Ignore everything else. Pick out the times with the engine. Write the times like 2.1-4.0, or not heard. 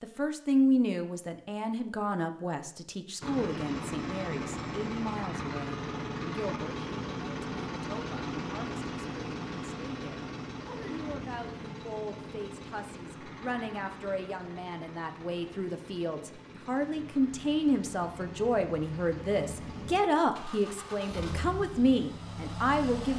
3.2-23.1.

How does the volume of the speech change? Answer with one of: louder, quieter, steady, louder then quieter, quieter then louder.
quieter then louder.